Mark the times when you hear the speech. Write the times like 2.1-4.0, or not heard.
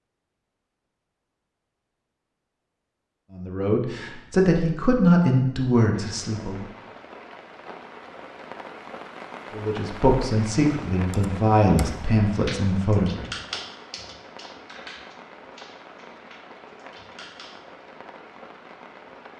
3.3-6.7, 9.5-13.3.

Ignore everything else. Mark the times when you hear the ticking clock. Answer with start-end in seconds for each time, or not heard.
not heard.